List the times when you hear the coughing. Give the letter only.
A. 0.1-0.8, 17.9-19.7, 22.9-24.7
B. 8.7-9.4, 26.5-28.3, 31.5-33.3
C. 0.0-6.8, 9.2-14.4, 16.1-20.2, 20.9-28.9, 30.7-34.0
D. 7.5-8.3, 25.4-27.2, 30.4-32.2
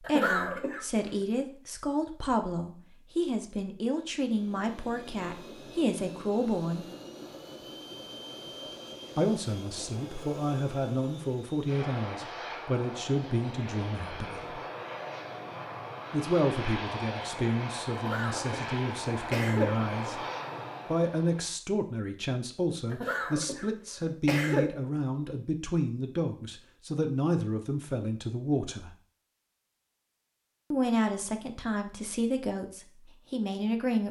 A.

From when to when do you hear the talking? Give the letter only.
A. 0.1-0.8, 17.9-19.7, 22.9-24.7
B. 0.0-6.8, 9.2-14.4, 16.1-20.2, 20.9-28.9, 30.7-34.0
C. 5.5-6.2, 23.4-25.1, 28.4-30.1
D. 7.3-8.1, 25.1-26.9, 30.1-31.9
B.